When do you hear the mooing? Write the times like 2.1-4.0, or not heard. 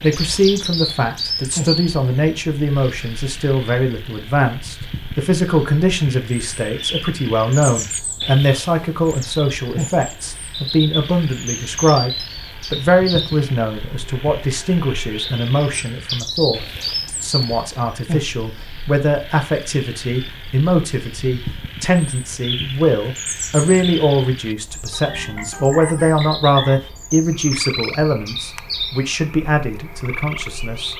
not heard.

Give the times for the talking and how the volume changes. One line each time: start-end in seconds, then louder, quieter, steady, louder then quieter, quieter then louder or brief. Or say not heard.
0.0-30.9 steady.